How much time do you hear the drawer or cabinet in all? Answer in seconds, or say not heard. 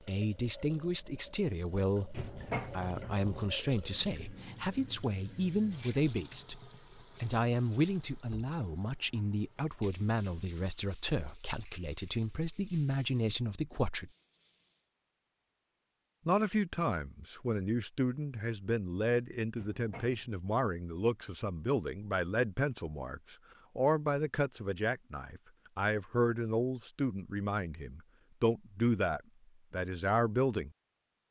2 s.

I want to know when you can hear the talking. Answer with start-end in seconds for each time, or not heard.
0.1-14.1, 16.2-30.7.